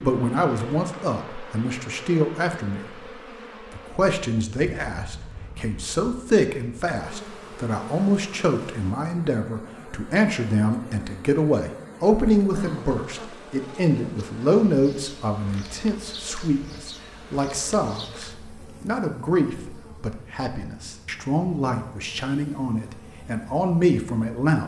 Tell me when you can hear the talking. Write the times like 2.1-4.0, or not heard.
0.0-3.0, 3.7-24.6.